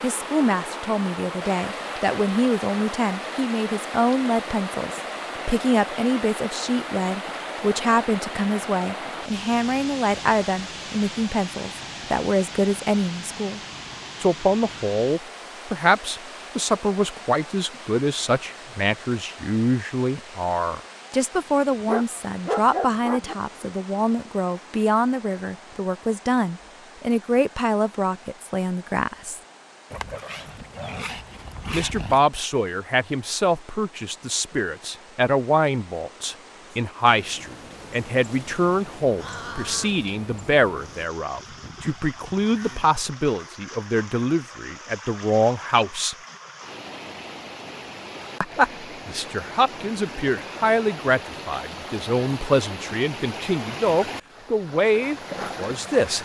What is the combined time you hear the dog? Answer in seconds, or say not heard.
4 s.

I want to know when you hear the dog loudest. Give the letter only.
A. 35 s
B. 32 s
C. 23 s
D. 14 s
C.